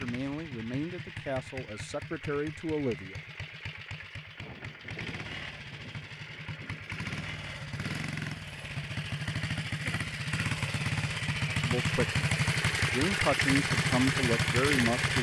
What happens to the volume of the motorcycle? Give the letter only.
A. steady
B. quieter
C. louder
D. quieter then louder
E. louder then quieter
C.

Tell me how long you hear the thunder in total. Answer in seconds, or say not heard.
3 s.